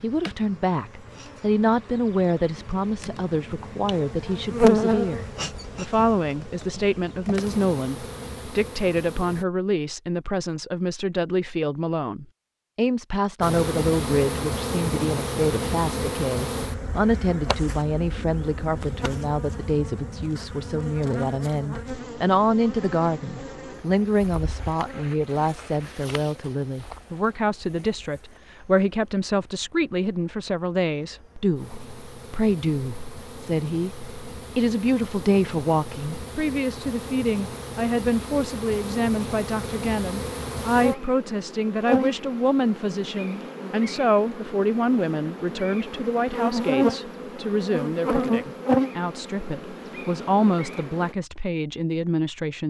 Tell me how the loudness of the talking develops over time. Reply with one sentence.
The volume of the talking stays about the same.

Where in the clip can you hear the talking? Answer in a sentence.
You can hear the talking from 0.0 to 52.6 s.